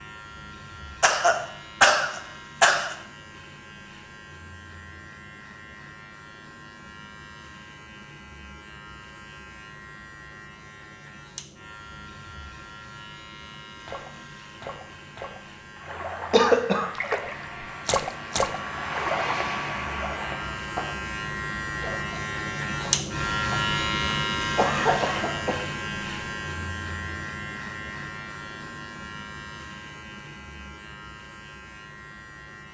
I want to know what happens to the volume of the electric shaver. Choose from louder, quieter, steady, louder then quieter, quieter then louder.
louder then quieter.